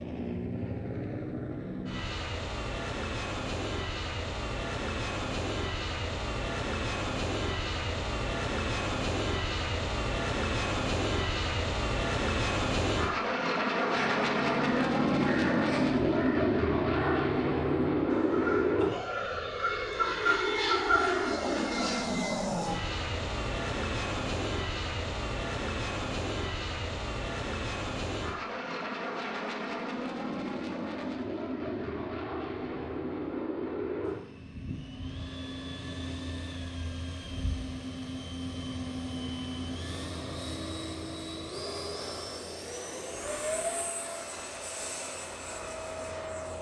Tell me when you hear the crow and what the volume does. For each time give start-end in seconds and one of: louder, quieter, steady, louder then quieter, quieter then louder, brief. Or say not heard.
13.9-21.4 louder.